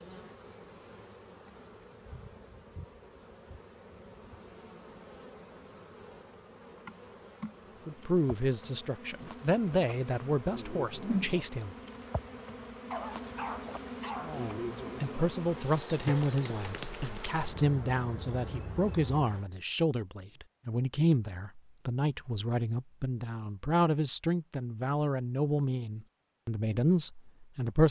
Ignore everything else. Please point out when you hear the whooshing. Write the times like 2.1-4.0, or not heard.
10.9-11.4.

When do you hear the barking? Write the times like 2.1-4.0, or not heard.
12.9-14.5.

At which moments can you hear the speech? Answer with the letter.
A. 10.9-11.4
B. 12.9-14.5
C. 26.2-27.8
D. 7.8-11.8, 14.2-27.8
D.